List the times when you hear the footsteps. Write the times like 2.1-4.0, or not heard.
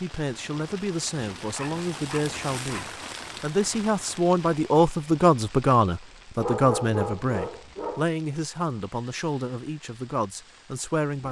not heard.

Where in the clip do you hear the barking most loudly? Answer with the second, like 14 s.
7 s.